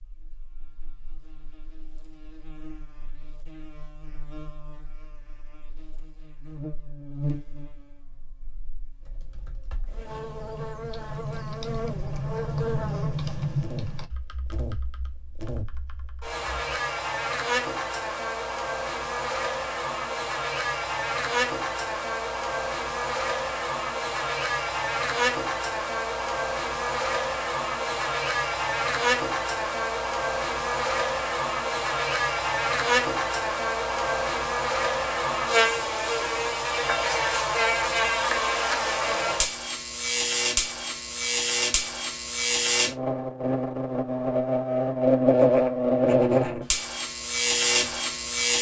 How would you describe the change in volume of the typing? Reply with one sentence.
The volume of the typing goes up, then down.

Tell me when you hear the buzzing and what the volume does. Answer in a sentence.
The buzzing can be heard from 0.2 to 48.5 s, getting louder.